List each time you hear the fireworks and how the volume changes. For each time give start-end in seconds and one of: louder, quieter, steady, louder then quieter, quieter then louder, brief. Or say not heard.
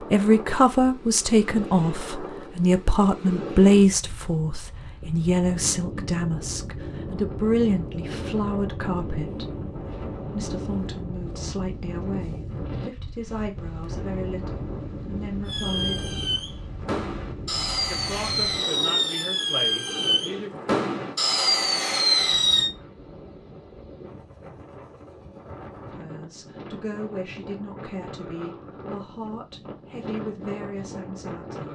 15.4-22.7 louder.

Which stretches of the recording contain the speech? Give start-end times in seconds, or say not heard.
0.0-9.5, 10.2-16.1, 17.9-20.5, 25.9-31.7.